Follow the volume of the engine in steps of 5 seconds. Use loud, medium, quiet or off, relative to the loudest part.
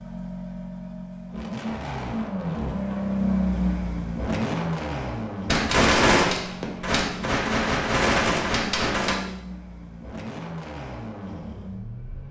loud, medium, medium.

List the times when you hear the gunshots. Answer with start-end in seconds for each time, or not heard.
5.5-9.2.